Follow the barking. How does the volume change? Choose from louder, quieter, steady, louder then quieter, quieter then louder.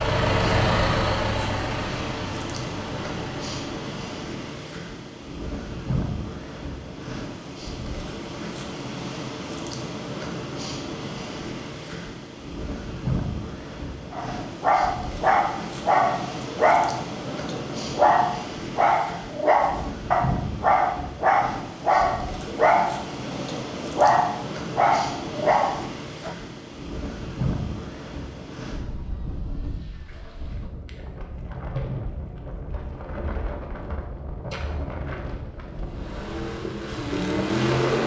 steady.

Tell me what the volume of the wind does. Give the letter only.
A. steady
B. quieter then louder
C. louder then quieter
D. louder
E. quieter
A.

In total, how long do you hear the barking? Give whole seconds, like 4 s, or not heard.
12 s.